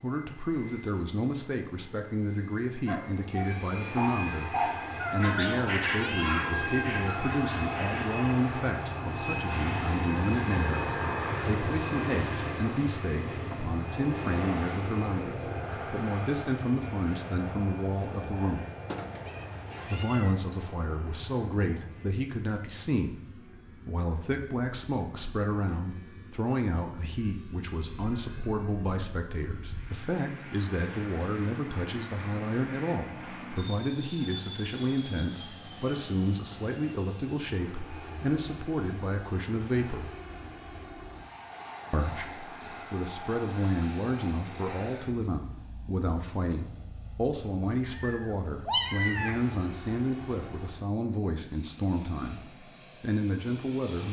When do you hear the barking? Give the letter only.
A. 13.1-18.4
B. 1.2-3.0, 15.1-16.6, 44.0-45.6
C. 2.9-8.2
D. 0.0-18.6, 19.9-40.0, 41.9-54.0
C.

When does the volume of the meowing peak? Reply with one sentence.
The loudest moment of the meowing is at 49 seconds.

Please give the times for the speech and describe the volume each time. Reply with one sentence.
The speech can be heard from 0.0 to 18.6 s, at a steady volume; from 19.9 to 40.0 s, at a steady volume; and from 41.9 to 54.0 s, at a steady volume.